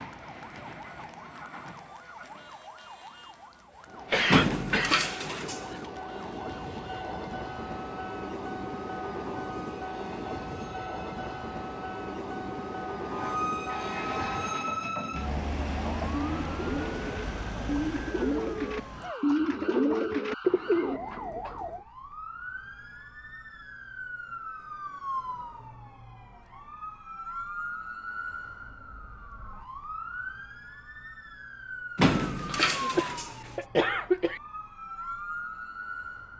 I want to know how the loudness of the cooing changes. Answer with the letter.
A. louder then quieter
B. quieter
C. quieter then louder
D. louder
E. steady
D.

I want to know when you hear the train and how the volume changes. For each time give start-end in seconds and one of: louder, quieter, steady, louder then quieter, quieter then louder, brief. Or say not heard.
0.0-14.5 louder.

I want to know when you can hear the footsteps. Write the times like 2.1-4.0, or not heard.
not heard.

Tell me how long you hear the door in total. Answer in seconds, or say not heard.
3 s.